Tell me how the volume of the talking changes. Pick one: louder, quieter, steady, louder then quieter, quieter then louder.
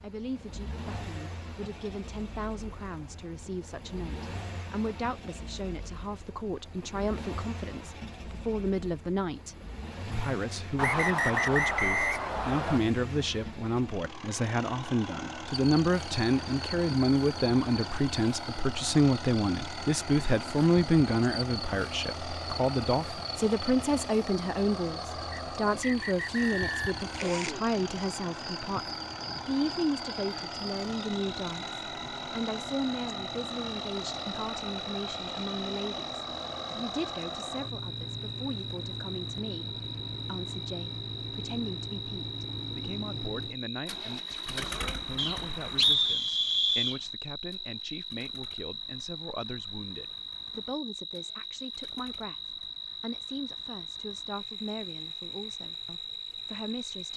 louder then quieter.